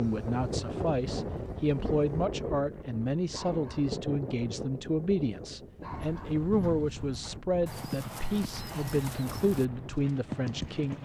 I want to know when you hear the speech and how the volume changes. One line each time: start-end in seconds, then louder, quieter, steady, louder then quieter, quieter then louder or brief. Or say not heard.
0.0-10.9 steady.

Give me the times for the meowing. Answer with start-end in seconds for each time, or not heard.
not heard.